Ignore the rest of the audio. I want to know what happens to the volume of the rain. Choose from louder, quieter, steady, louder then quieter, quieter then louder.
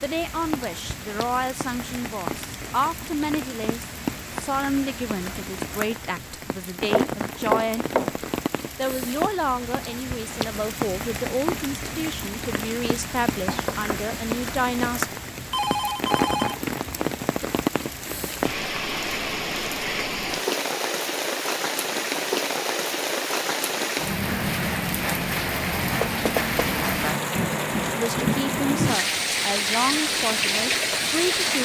louder.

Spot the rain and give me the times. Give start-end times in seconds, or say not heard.
0.0-31.6.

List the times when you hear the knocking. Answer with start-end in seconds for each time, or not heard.
6.9-8.2, 13.4-14.2, 26.0-26.7.